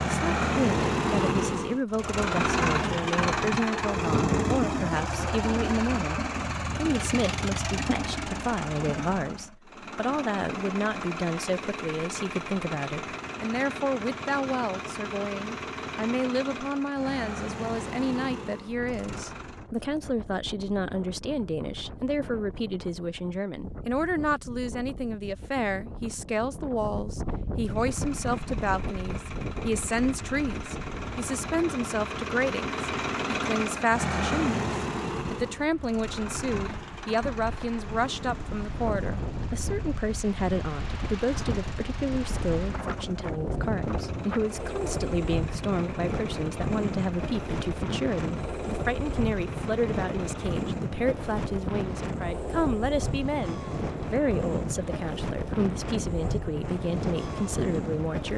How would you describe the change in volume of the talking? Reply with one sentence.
The loudness of the talking stays about the same.